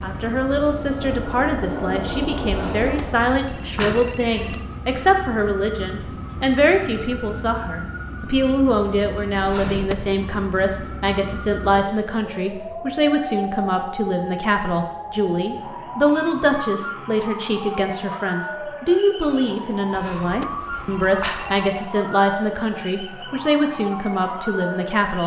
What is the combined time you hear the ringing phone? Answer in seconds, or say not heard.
5 s.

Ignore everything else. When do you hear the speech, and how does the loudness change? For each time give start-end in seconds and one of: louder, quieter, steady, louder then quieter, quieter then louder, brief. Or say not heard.
0.0-25.2 steady.